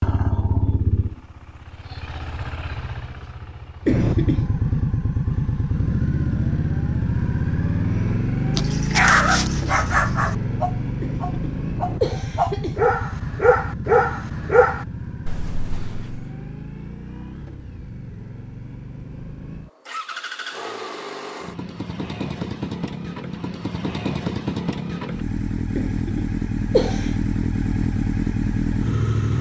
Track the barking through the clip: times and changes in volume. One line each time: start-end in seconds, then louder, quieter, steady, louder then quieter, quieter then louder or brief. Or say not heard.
8.6-16.2 quieter then louder.